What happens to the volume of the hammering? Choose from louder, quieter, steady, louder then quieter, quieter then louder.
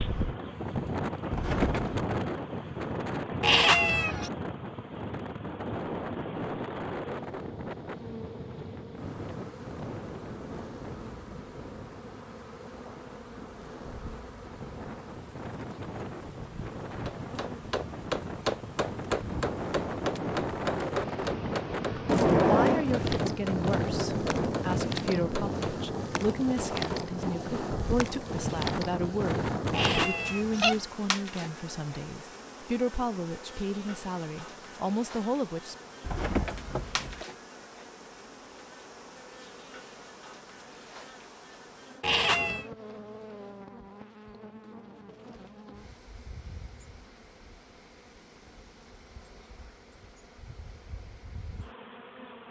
quieter.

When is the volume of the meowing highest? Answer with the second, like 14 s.
4 s.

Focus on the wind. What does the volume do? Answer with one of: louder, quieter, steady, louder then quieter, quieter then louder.
quieter then louder.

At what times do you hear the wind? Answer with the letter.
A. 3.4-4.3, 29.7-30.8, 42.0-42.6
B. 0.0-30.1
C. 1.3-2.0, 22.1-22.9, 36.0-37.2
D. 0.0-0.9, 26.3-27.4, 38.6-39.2
B.